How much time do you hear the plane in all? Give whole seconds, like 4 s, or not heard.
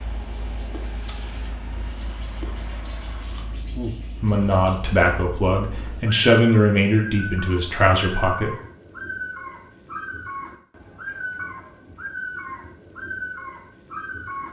4 s.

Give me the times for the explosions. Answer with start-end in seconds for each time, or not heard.
not heard.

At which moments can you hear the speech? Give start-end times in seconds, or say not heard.
4.2-8.5.